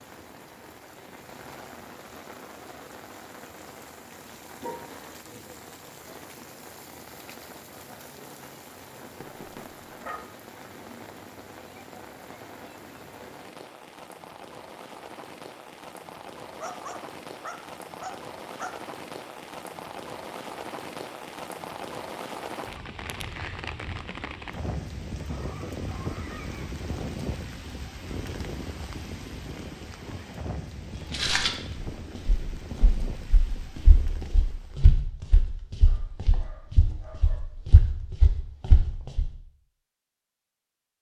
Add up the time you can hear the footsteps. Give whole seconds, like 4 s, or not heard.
8 s.